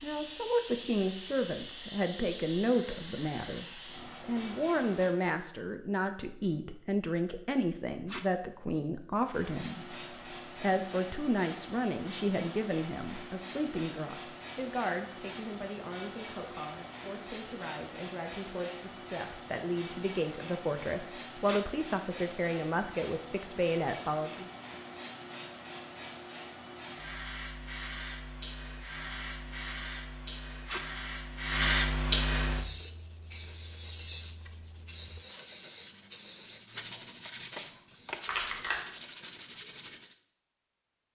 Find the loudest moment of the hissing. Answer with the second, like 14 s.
32 s.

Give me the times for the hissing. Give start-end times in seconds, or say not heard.
0.0-5.1, 9.3-38.8.